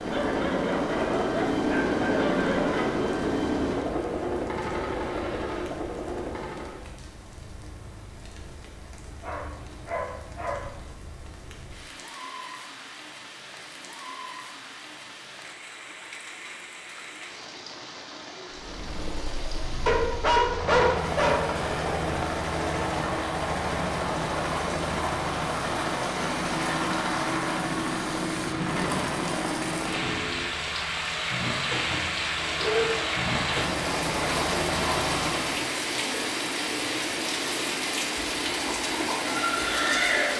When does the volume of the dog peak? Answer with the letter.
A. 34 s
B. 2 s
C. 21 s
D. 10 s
C.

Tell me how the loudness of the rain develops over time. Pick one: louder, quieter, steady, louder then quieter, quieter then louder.
louder.